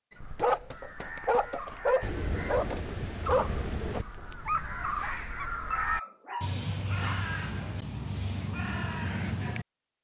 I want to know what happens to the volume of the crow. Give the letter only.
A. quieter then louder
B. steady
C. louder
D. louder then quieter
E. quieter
C.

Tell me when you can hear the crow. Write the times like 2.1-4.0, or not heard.
0.1-9.7.